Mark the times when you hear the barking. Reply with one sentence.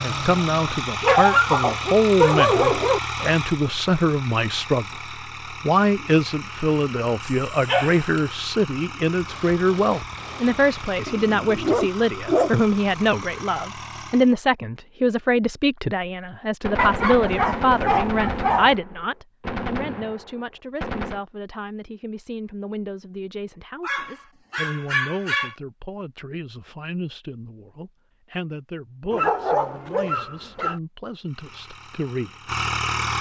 You can hear the barking from 1.0 to 3.0 s, from 7.2 to 8.2 s, from 11.1 to 12.7 s, from 16.8 to 18.8 s, from 23.8 to 25.6 s and from 29.1 to 30.8 s.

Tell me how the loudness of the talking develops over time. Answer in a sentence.
The loudness of the talking goes down.